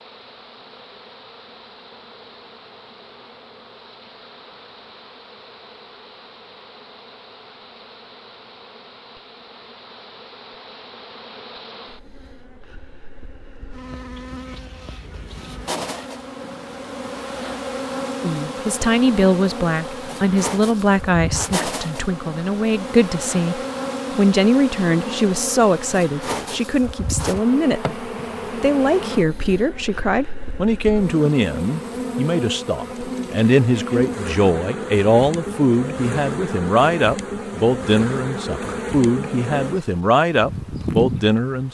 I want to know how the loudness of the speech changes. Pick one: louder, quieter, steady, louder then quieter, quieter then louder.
steady.